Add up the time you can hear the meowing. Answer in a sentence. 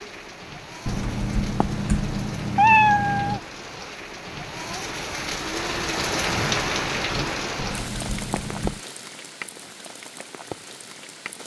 The meowing can be heard for 4 seconds in total.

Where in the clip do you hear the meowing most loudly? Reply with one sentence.
The loudest moment of the meowing is at 3 seconds.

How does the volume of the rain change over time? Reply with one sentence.
The loudness of the rain goes up, then down.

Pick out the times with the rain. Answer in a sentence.
The rain can be heard from 0.0 to 11.4 s.